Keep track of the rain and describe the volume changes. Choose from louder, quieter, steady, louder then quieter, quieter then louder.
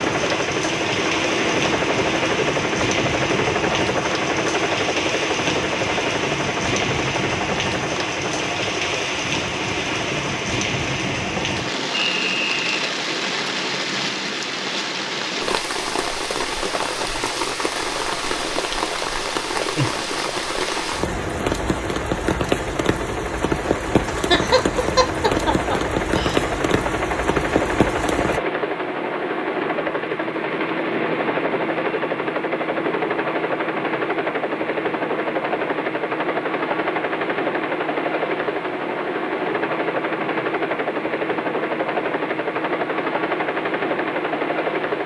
steady.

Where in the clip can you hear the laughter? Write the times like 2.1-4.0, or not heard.
24.1-26.4.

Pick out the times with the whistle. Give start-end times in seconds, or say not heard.
11.9-12.8.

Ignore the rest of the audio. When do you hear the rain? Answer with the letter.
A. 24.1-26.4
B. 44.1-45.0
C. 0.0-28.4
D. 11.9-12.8
C.